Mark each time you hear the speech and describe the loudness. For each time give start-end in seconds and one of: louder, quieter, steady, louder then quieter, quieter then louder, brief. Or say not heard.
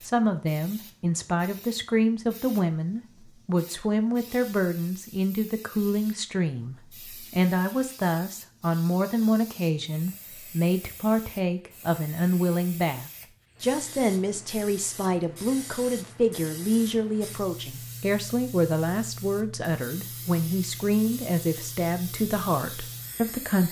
0.0-23.6 steady.